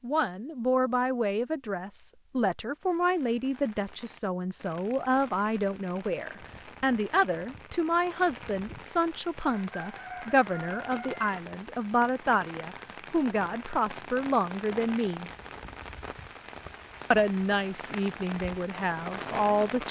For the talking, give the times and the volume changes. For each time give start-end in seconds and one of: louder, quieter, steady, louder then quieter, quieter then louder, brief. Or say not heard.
0.0-15.3 steady
17.1-19.8 brief.